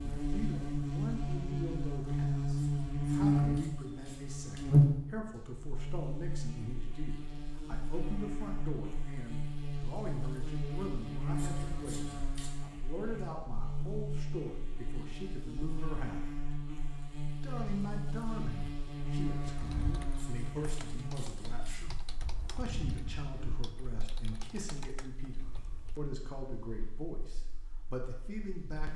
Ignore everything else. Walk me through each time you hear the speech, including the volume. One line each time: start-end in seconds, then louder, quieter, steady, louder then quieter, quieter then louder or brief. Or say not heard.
0.0-16.4 steady
17.4-28.9 steady.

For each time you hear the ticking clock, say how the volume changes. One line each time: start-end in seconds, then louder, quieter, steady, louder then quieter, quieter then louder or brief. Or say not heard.
not heard.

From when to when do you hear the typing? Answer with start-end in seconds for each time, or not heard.
19.5-26.0.